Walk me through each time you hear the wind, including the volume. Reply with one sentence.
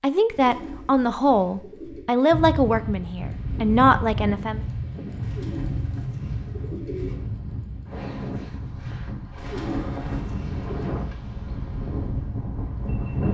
The wind can be heard from 2.3 to 13.2 s, at a steady volume.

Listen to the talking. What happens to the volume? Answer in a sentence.
The loudness of the talking goes down, then up.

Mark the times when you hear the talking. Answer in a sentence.
The talking can be heard from 0.0 to 4.6 s.